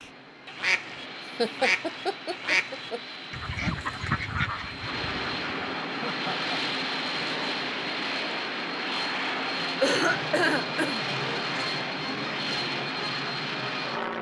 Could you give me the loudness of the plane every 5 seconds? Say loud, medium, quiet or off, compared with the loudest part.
medium, loud, loud.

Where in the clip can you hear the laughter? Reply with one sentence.
The laughter can be heard from 1.4 to 3.0 s, from 6.0 to 6.8 s and from 9.8 to 11.0 s.